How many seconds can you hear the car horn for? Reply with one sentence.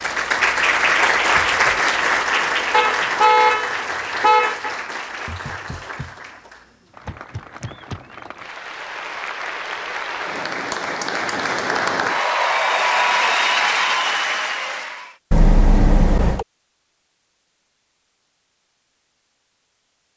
The car horn can be heard for 3 seconds in total.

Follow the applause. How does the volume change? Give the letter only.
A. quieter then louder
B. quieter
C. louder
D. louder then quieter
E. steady
A.